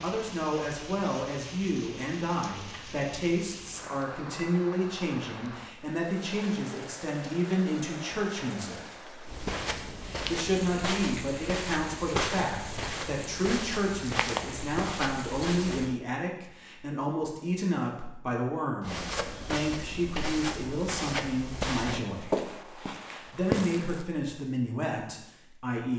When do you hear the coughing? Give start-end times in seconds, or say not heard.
not heard.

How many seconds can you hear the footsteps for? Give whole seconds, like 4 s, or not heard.
12 s.